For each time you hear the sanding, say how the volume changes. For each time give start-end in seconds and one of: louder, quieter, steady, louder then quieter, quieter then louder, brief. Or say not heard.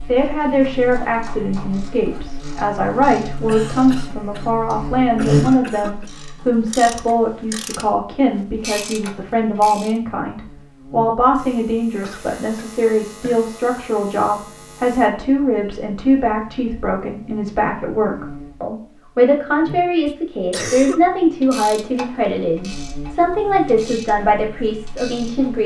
not heard.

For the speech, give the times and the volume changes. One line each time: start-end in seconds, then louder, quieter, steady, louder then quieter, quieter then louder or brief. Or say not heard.
0.1-25.6 steady.